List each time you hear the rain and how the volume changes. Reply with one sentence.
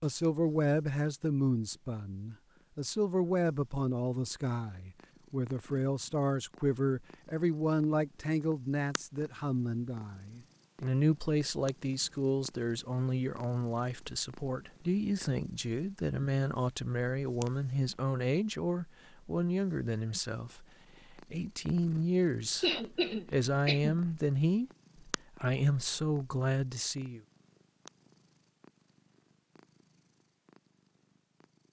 You can't hear the rain here.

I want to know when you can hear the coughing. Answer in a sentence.
You can hear the coughing from 22.6 to 24.0 s.